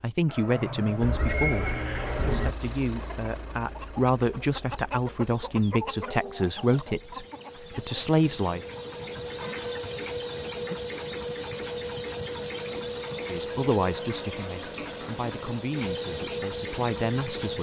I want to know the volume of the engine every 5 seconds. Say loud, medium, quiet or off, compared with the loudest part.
medium, medium, loud, loud.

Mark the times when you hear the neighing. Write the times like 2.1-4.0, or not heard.
0.6-2.5.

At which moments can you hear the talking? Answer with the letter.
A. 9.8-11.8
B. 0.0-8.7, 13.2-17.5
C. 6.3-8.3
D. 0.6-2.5
B.